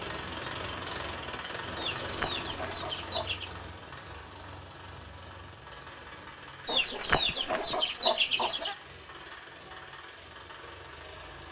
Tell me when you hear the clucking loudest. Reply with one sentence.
The volume of the clucking peaks at 8 seconds.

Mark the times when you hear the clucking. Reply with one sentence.
You can hear the clucking from 1.8 to 3.5 s and from 6.7 to 8.8 s.